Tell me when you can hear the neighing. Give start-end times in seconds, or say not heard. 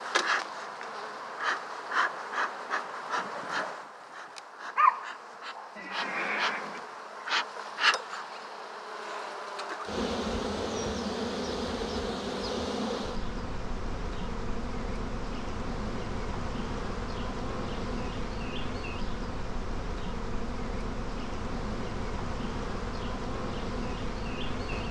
5.8-6.8.